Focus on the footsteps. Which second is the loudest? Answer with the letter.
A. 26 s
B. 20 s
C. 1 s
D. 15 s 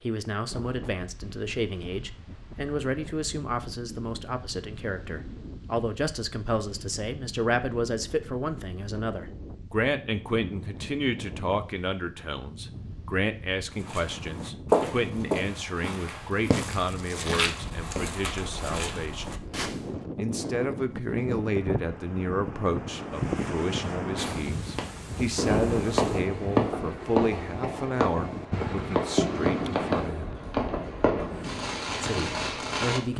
D.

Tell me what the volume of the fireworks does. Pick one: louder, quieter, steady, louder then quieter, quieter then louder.
steady.